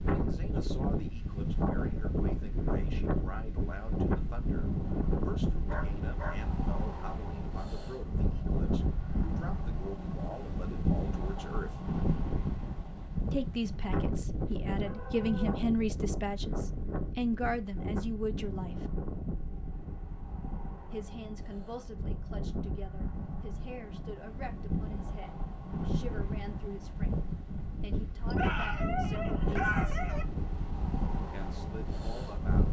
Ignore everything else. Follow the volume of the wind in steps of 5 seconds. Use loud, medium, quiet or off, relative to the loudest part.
loud, loud, loud, medium, medium, loud, loud.